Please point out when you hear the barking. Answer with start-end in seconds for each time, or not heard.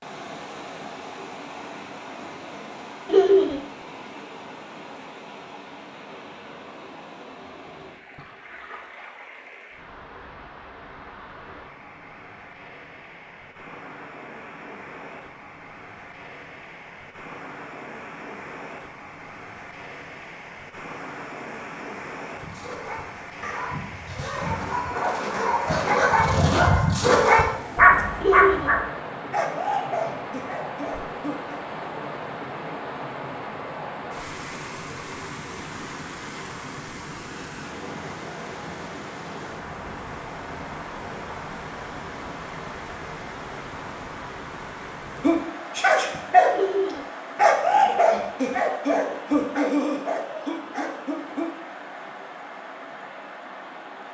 22.4-31.6, 45.2-46.5, 47.4-51.5.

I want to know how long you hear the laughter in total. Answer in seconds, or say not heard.
2 s.